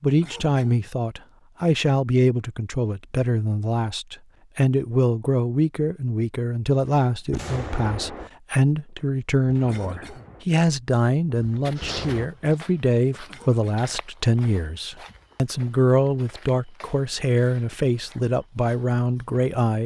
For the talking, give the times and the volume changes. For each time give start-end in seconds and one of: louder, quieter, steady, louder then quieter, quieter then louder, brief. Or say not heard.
0.0-19.8 steady.